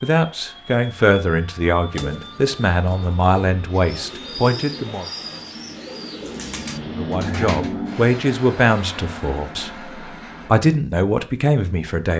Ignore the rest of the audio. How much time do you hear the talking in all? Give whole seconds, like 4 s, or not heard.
10 s.